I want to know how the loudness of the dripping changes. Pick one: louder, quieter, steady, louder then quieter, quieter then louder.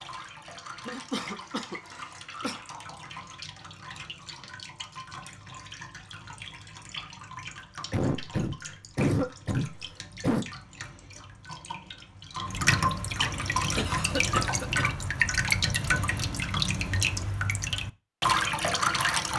louder.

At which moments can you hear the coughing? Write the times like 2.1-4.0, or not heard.
0.8-2.6, 7.9-10.4, 13.8-14.9.